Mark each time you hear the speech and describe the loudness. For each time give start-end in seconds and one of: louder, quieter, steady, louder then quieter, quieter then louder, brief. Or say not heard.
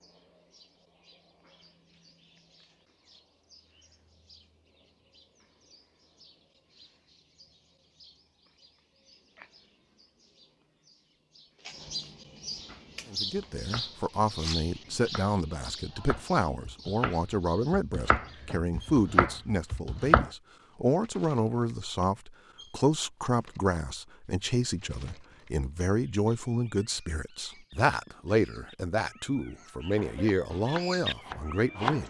13.1-32.0 steady.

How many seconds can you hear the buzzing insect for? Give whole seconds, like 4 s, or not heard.
not heard.